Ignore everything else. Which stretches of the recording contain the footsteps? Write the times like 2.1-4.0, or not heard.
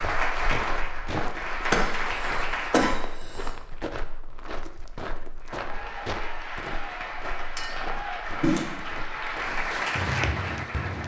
0.0-11.0.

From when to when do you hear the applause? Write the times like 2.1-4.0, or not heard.
0.0-3.2, 5.4-11.0.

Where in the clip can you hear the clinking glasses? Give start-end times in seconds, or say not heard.
7.5-8.0.